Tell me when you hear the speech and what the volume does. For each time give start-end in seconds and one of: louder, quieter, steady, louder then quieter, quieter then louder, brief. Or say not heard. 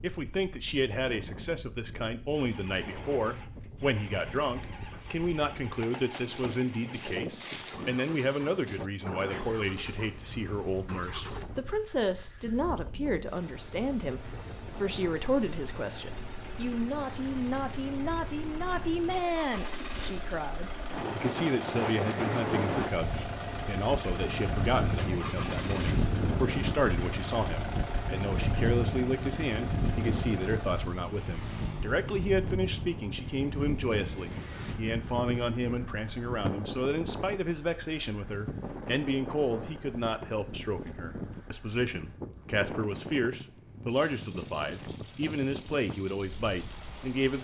0.0-47.4 steady.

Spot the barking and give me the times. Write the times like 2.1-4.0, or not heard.
not heard.